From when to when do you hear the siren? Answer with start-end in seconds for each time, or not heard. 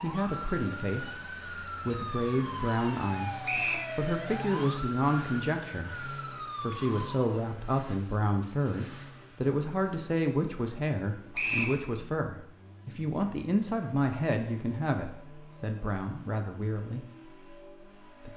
0.0-7.5.